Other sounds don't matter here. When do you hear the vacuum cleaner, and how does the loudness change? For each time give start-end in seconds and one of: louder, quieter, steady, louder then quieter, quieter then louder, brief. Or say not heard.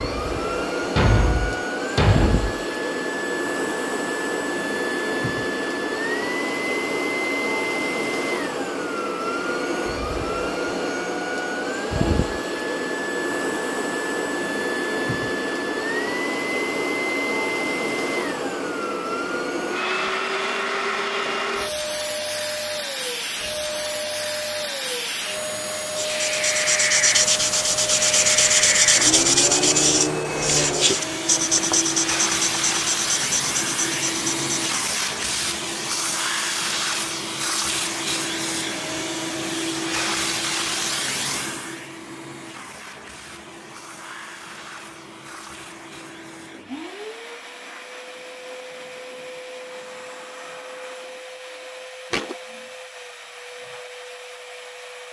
0.0-55.0 quieter.